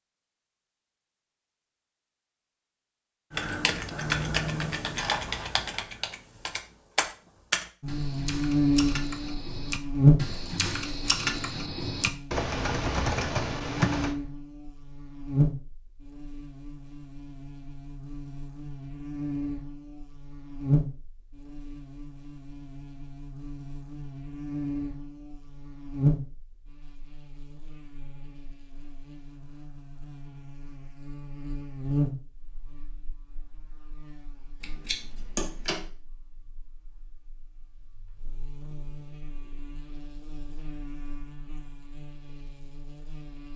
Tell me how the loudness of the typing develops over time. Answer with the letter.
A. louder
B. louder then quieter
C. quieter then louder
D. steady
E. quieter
C.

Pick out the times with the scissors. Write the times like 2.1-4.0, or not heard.
5.0-5.8, 34.6-35.9.